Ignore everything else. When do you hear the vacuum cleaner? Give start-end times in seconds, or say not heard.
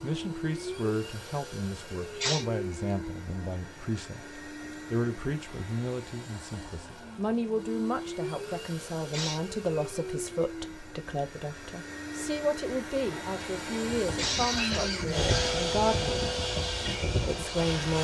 0.0-17.9.